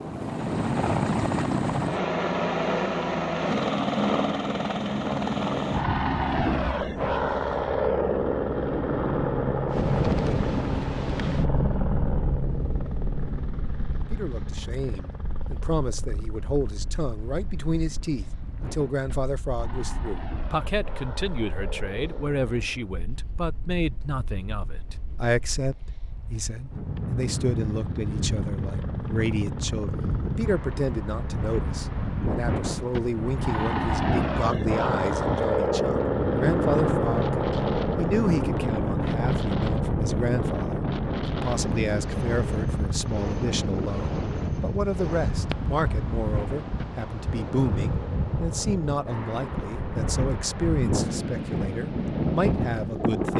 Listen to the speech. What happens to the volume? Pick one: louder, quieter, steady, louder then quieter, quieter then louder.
steady.